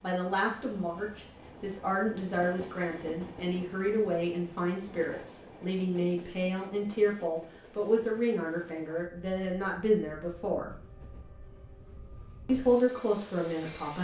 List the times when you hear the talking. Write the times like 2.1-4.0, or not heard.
0.0-10.8, 12.4-13.9.